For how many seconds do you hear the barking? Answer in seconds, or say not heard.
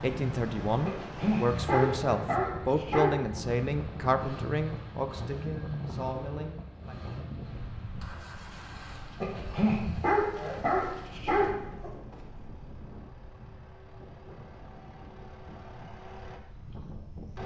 5 s.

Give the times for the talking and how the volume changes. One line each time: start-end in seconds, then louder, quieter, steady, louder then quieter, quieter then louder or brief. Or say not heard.
0.0-7.0 quieter.